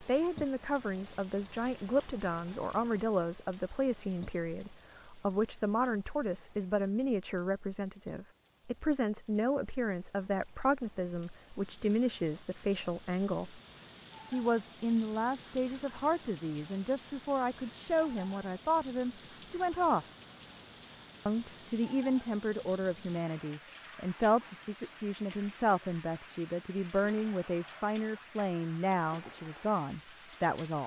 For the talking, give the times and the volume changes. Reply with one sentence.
You can hear the talking from 0.0 to 13.6 s, at a steady volume; from 14.3 to 20.1 s, at a steady volume; and from 21.2 to 30.8 s, at a steady volume.